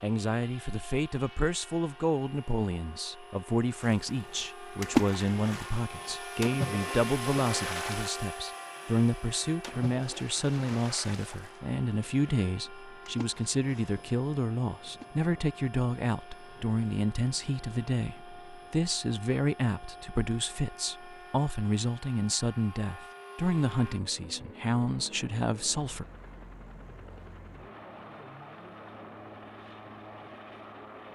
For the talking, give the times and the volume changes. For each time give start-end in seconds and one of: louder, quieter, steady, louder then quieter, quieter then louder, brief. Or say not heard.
0.0-26.1 steady.